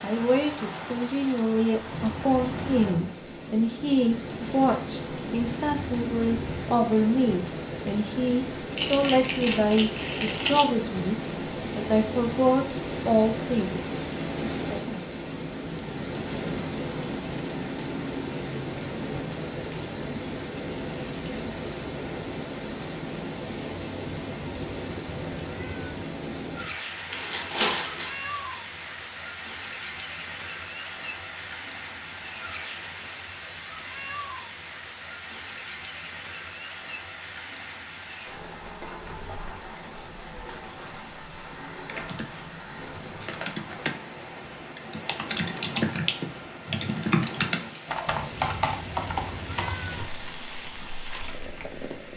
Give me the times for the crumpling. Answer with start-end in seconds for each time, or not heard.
8.8-10.7, 27.1-28.1, 43.2-43.8.